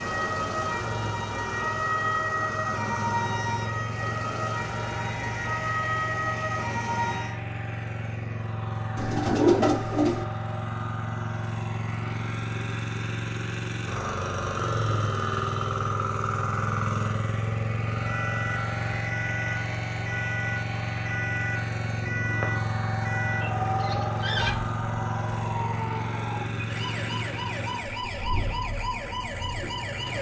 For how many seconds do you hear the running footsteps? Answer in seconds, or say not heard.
not heard.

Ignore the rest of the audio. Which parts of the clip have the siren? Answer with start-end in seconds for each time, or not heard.
0.0-7.4, 17.9-30.1.